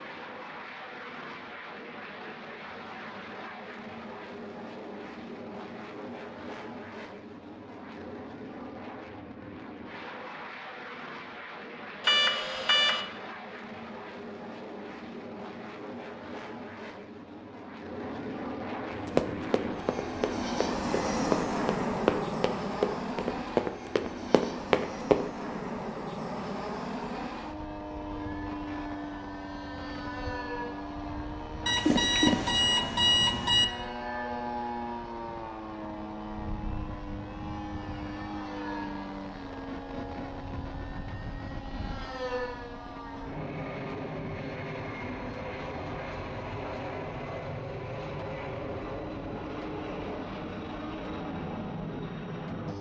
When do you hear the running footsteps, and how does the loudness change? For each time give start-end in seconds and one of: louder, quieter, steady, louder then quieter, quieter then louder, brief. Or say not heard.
18.9-25.2 louder.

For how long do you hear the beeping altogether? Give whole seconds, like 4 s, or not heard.
3 s.